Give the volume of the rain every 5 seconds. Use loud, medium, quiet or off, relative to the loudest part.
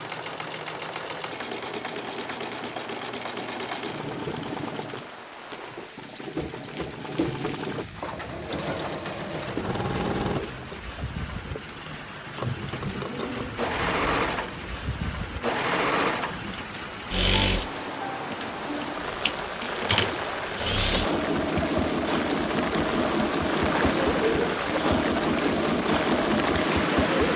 quiet, quiet, medium, medium, loud, loud.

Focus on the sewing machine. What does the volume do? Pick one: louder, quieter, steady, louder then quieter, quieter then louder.
louder.